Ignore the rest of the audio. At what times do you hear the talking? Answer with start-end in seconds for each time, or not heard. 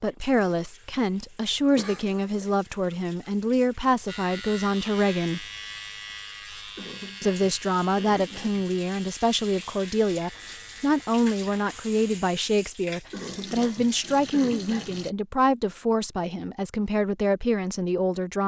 0.0-5.5, 7.2-18.4.